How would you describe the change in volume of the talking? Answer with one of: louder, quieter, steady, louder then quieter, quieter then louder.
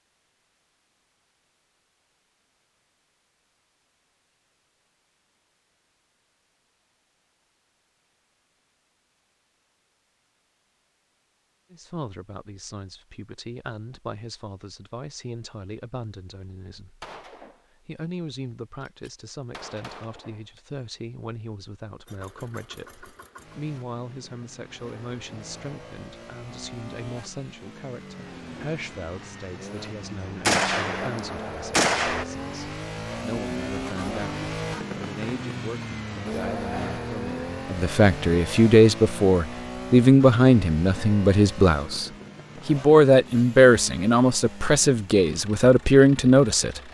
louder.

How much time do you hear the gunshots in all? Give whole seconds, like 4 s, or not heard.
4 s.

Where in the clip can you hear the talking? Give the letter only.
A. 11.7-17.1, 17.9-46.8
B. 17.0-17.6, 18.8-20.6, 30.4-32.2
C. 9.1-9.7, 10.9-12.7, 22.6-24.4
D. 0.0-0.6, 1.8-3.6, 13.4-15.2
A.